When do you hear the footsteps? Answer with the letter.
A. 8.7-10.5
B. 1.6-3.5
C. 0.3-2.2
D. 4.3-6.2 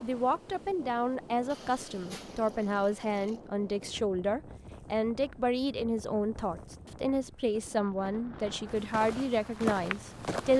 A.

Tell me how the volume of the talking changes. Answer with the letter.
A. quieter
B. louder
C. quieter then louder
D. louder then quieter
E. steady
E.